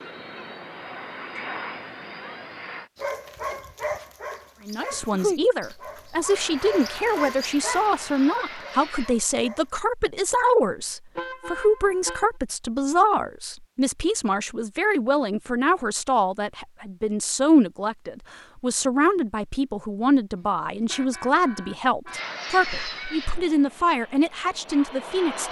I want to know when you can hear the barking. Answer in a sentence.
The barking can be heard from 3.0 to 9.9 s.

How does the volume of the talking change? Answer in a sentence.
The volume of the talking stays about the same.